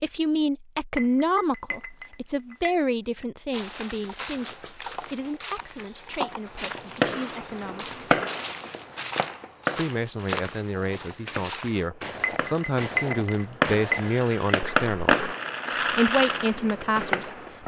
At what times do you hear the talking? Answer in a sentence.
The talking can be heard from 0.0 to 7.9 s, from 9.8 to 15.2 s and from 15.9 to 17.4 s.